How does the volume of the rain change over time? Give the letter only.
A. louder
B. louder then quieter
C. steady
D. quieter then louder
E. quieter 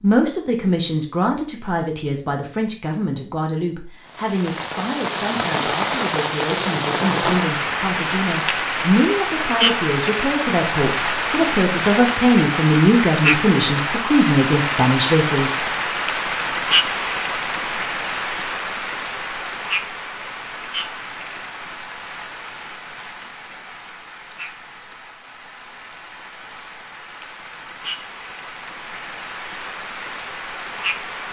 E.